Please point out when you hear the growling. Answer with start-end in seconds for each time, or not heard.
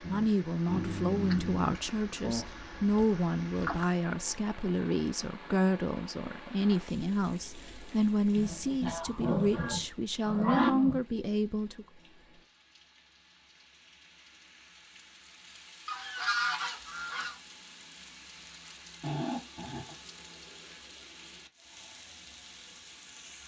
0.0-1.6, 8.3-11.0, 19.0-19.9.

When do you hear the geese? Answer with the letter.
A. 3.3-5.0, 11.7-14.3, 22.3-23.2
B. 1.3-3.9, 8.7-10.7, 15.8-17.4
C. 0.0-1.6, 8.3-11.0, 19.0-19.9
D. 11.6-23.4
B.